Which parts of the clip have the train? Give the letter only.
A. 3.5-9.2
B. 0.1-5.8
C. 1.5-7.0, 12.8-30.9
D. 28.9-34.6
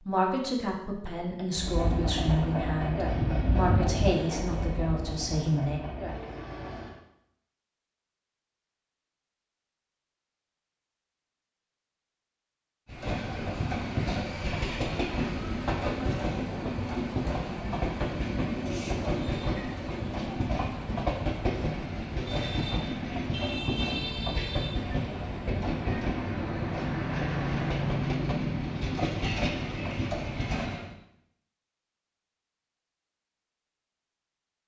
C.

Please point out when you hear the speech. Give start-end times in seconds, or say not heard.
0.1-5.8.